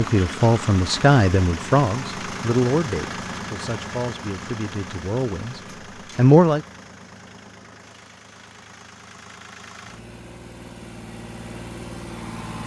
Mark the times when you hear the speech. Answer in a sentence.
The speech can be heard from 0.0 to 6.6 s.